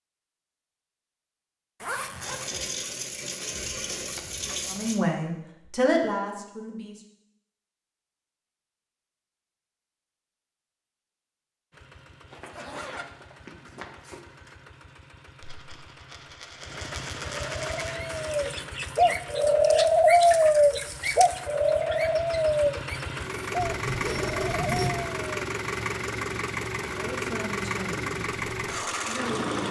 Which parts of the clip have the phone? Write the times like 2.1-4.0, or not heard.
not heard.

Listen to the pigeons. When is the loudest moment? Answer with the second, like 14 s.
20 s.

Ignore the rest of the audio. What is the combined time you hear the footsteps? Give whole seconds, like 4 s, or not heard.
not heard.